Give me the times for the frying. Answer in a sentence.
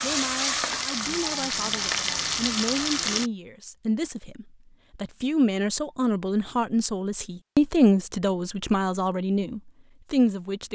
You can hear the frying from 0.0 to 3.3 s.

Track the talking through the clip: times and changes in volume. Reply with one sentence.
You can hear the talking from 0.0 to 10.7 s, getting louder.